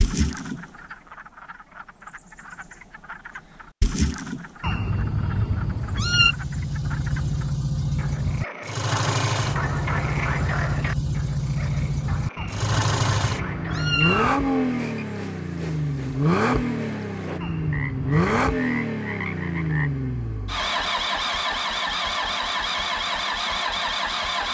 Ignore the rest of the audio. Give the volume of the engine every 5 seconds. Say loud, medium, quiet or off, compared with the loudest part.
off, loud, loud, loud, loud.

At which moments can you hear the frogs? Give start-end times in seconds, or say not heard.
0.0-19.9.